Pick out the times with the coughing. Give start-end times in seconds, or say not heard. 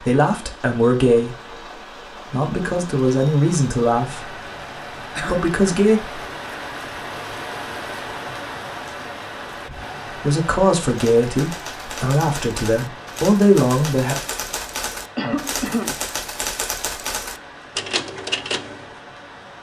5.2-5.8, 15.2-15.9.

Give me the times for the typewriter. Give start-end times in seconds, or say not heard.
10.8-18.9.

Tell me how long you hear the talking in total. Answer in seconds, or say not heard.
8 s.